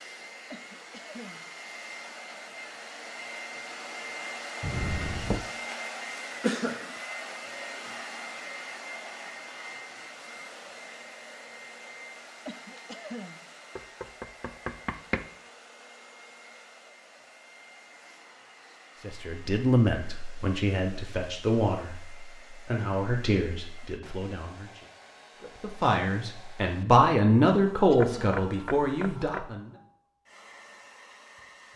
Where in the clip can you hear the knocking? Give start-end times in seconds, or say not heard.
4.6-5.5, 13.8-15.2, 28.0-29.6.